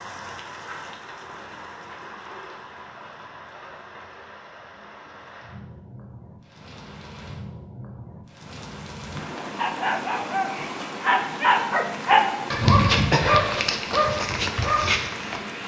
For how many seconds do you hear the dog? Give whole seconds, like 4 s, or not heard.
6 s.